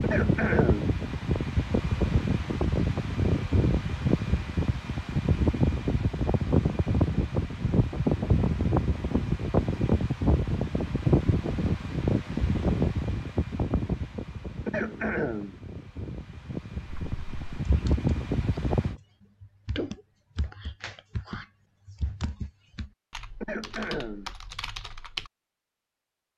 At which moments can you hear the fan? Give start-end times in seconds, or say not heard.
0.0-18.9.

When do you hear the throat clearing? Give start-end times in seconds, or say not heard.
0.0-0.9, 14.7-15.6, 23.4-24.3.